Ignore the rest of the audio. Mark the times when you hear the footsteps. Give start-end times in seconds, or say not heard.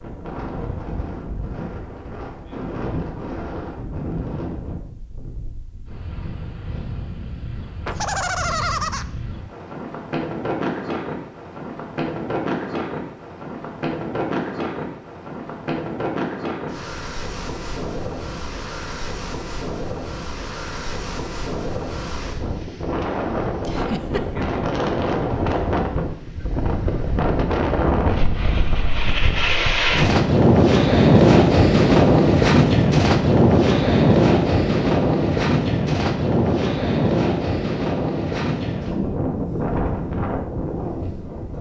not heard.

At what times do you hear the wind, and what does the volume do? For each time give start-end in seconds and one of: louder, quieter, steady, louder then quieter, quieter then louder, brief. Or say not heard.
0.0-41.5 louder.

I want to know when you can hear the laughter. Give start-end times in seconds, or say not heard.
7.8-9.1, 23.6-24.2.